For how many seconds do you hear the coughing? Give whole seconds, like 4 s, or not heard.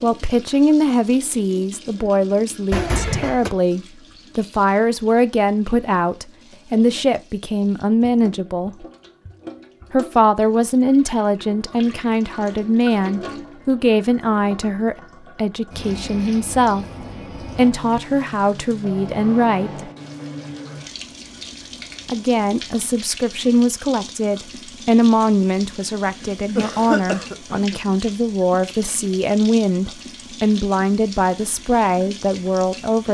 2 s.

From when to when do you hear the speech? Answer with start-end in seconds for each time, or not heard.
0.0-8.8, 9.9-19.9, 22.1-33.0.